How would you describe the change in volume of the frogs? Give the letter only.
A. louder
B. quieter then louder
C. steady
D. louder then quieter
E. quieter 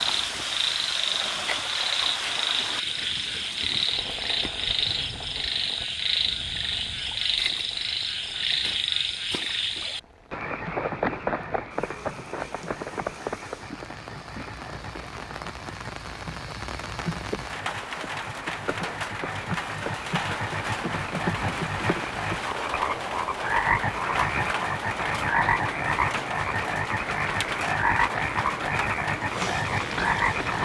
B.